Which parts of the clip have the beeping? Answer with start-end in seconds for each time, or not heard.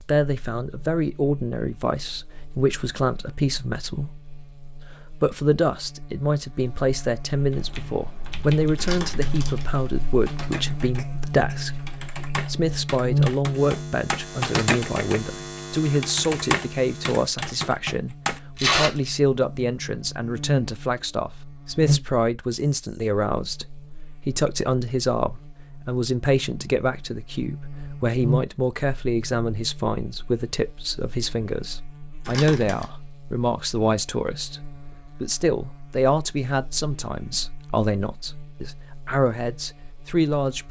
not heard.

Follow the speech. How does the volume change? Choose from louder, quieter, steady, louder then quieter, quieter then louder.
steady.